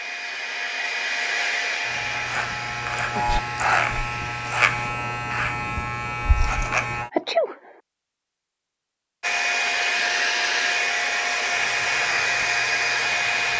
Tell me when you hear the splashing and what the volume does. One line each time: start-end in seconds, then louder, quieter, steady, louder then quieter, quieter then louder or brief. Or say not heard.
not heard.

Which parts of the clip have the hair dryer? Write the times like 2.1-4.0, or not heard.
0.0-4.9, 9.2-13.5.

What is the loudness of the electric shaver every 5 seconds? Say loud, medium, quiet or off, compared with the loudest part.
loud, loud, quiet.